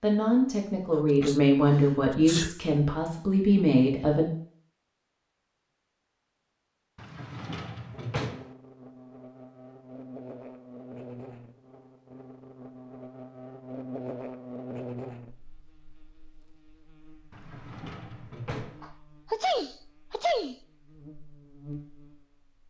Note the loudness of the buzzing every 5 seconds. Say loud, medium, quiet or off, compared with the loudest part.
off, medium, loud, medium, medium.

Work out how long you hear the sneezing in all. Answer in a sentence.
You can hear the sneezing for 3 seconds altogether.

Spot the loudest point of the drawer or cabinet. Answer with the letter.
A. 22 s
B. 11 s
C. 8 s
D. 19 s
C.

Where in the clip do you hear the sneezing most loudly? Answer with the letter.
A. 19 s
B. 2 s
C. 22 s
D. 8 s
A.